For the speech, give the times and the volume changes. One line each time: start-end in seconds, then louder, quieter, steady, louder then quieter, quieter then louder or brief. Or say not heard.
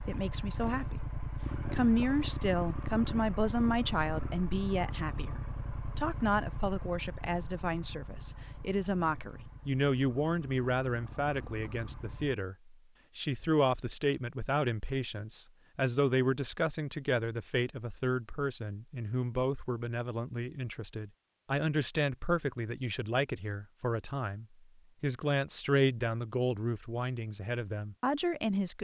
0.0-28.7 steady.